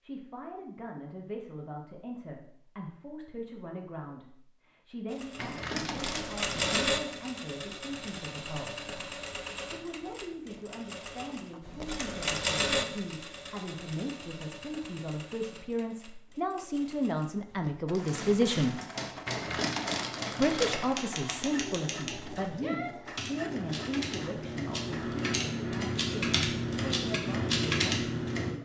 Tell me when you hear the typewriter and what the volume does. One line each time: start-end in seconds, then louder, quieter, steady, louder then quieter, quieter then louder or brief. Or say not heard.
17.9-28.5 louder.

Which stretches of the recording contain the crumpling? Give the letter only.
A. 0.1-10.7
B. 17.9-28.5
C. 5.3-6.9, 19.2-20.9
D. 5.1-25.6
C.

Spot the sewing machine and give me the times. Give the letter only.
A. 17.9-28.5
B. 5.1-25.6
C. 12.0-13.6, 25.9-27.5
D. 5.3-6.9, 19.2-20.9
B.